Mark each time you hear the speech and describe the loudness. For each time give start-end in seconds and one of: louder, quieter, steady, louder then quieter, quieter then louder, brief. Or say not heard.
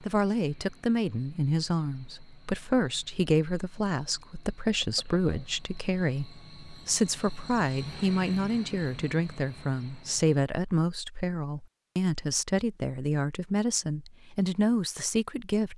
0.0-15.7 steady.